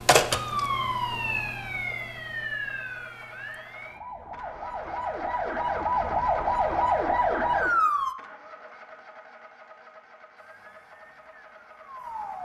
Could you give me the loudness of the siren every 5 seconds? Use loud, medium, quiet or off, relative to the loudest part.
medium, loud, quiet.